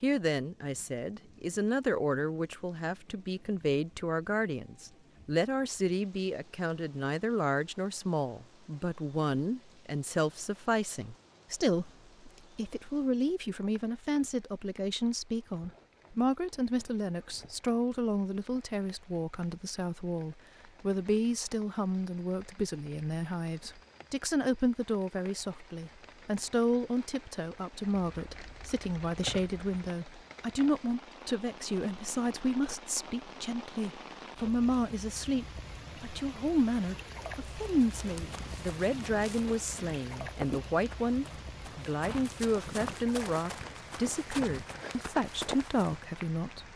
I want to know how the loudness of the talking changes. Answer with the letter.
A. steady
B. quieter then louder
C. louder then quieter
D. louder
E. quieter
A.